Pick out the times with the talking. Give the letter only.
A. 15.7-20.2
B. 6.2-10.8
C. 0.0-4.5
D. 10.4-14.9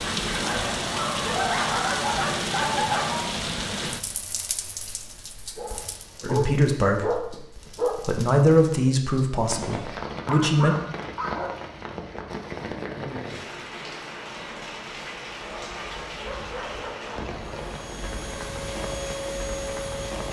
B.